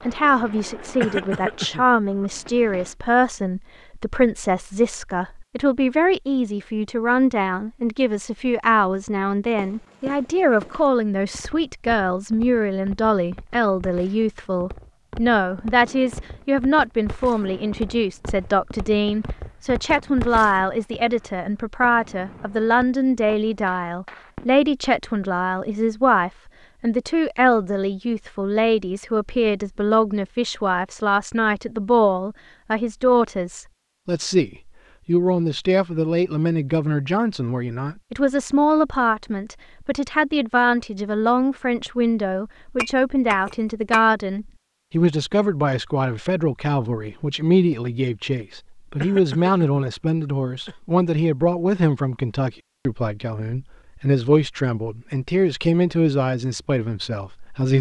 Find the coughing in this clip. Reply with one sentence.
You can hear the coughing from 1.0 to 2.3 s and from 49.0 to 50.8 s.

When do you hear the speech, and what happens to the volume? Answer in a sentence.
The speech can be heard from 0.1 to 57.7 s, at a steady volume.